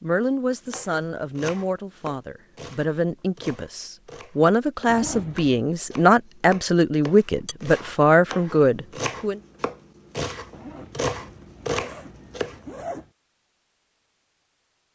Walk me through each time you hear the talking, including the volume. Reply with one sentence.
The talking can be heard from 0.0 to 9.4 s, getting louder.